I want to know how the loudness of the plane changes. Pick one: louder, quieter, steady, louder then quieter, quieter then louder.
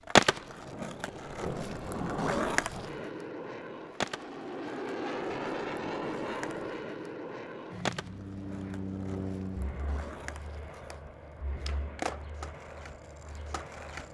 louder then quieter.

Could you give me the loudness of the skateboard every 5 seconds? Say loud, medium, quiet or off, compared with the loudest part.
loud, quiet, quiet.